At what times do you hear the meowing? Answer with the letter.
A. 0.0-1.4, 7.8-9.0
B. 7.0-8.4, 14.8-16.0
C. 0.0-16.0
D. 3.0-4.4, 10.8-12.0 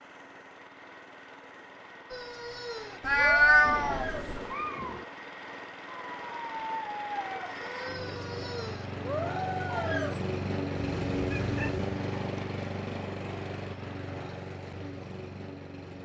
D.